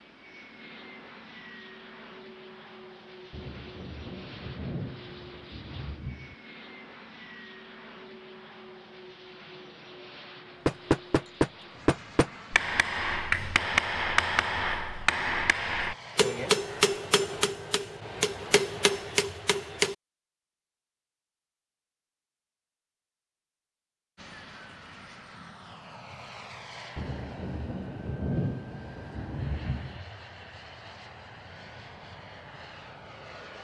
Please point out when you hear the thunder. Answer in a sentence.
You can hear the thunder from 3.3 to 6.3 s and from 26.9 to 30.0 s.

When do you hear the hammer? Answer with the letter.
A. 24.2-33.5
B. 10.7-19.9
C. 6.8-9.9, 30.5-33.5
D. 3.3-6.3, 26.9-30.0
B.